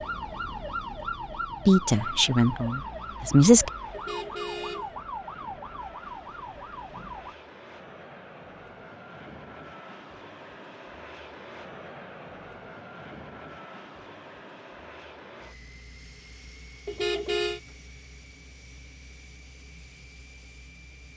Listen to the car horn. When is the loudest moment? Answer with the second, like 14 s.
17 s.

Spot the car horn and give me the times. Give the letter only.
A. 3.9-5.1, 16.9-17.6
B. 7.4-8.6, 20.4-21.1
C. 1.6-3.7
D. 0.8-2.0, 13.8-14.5
A.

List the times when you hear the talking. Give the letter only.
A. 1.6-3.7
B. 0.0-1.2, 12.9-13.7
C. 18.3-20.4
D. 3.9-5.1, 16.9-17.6
A.